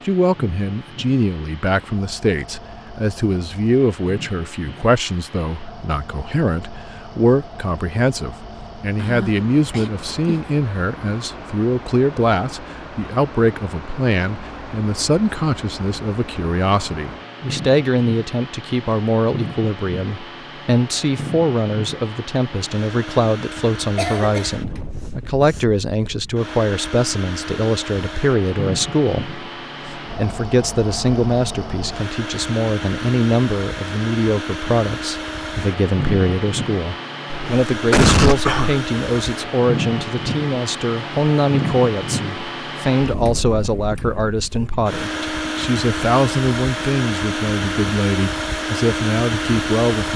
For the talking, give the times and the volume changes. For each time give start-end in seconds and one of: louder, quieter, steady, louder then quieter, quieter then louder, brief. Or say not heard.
0.1-50.1 steady.